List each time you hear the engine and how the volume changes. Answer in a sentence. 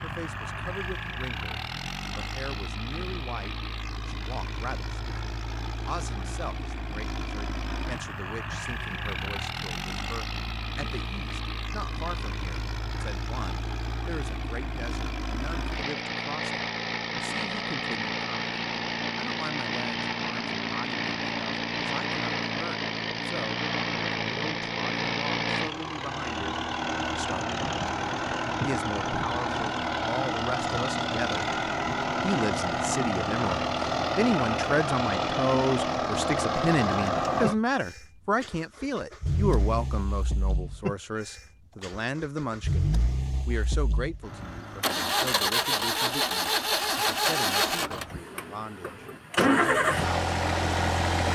The engine can be heard from 0.0 to 51.2 s, getting louder.